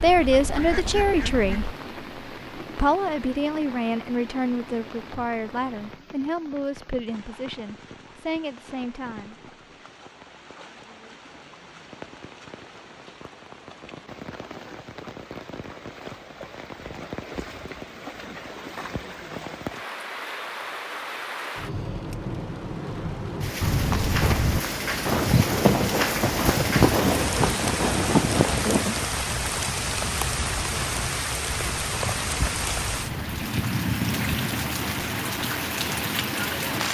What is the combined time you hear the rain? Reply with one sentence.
The rain can be heard for 37 seconds in total.